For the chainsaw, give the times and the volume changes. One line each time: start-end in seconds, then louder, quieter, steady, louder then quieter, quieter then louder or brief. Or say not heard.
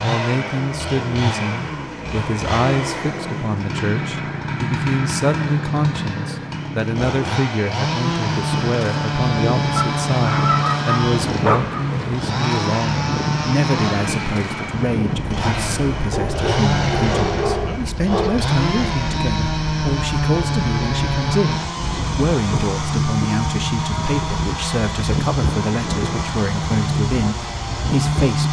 0.0-28.4 steady.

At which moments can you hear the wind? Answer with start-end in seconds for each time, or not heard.
8.0-28.4.